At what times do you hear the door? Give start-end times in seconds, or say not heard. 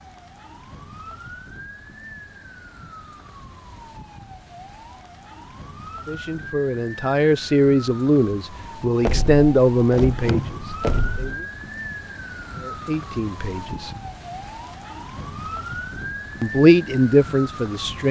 9.1-11.3.